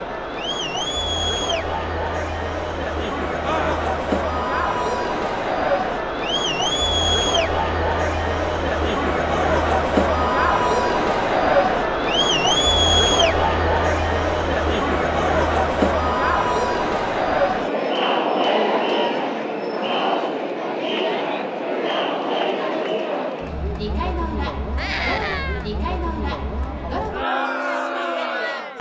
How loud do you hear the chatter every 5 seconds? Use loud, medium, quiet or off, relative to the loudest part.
medium, loud, loud, loud, medium, medium.